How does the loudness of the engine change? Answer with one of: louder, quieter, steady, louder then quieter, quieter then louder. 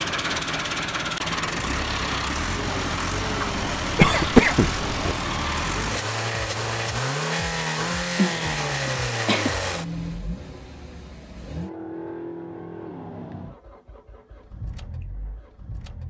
quieter.